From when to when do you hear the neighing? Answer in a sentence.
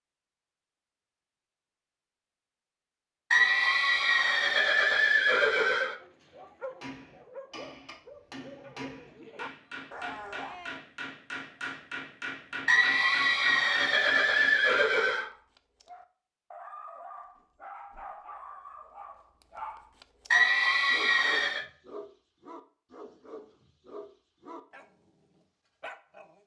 The neighing can be heard from 3.3 to 6.0 s, from 12.7 to 15.3 s and from 20.3 to 21.6 s.